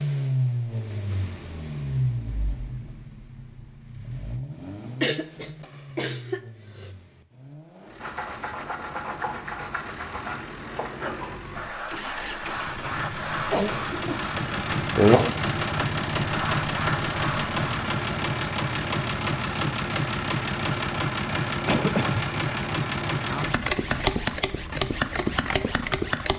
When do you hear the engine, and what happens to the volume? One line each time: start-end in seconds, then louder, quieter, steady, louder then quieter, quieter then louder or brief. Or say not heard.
0.0-26.3 quieter then louder.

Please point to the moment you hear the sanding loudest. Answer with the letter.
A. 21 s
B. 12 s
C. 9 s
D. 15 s
D.